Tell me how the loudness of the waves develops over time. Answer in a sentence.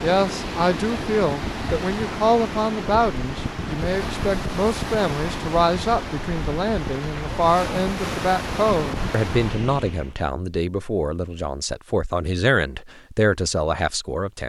The loudness of the waves stays about the same.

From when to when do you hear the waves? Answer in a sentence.
The waves can be heard from 0.0 to 10.2 s.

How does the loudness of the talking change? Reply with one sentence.
The volume of the talking stays about the same.